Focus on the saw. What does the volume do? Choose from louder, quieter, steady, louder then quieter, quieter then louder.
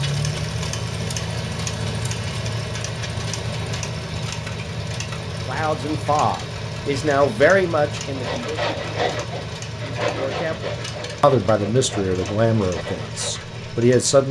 quieter.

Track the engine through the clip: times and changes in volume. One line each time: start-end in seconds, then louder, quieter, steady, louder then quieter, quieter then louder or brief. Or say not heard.
0.0-14.2 quieter.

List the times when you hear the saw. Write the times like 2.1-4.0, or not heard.
8.1-13.4.